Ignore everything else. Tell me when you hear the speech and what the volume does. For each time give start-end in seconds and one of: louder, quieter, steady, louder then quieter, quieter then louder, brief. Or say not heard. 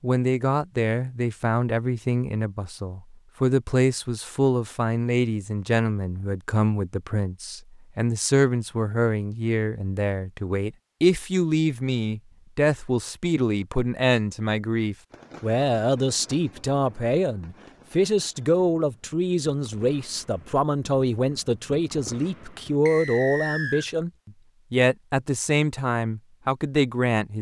0.0-27.3 steady.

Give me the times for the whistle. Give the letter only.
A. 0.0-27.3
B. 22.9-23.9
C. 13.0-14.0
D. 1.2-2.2
B.